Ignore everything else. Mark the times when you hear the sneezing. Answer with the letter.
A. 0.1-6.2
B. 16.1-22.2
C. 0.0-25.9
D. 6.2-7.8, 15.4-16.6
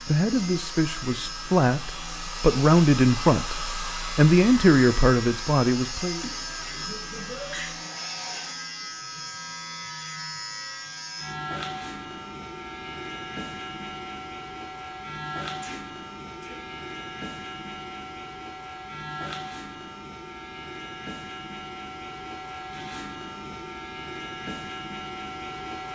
D.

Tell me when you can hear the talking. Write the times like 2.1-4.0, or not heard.
0.1-6.2.